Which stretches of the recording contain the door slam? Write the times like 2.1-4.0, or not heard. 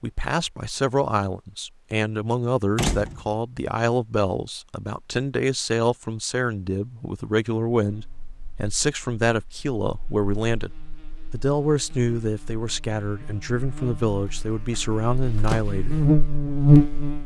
2.8-3.4, 14.7-15.7.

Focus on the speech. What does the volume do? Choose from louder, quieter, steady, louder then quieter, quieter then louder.
steady.